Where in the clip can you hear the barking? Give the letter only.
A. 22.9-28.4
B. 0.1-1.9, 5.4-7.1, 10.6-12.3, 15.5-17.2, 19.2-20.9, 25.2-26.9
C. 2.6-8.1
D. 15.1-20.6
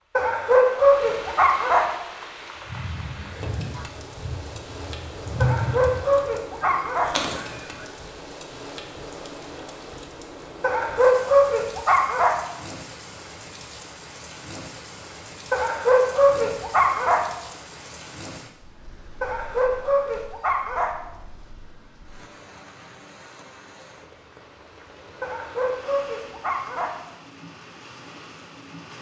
B.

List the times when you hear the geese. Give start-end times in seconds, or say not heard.
2.6-8.1.